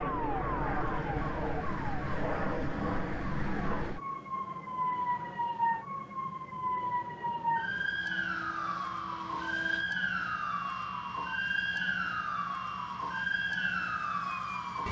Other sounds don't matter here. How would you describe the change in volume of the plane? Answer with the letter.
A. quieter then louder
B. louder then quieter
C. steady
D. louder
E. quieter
E.